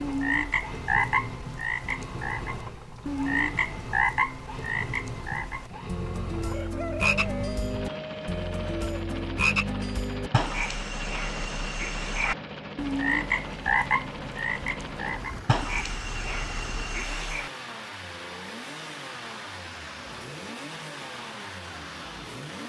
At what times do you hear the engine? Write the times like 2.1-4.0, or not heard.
0.0-22.6.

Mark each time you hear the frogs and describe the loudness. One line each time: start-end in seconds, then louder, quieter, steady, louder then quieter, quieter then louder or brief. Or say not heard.
0.0-17.5 steady.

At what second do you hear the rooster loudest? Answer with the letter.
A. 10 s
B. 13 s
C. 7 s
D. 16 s
C.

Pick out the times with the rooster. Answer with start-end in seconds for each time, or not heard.
6.5-8.8.